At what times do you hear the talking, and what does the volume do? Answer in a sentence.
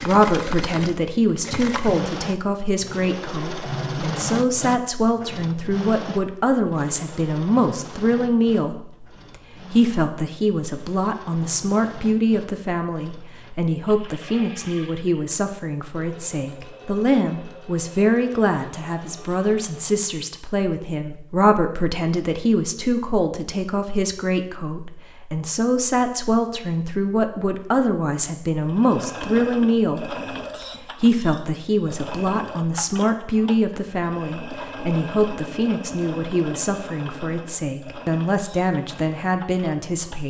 The talking can be heard from 0.0 to 40.2 s, at a steady volume.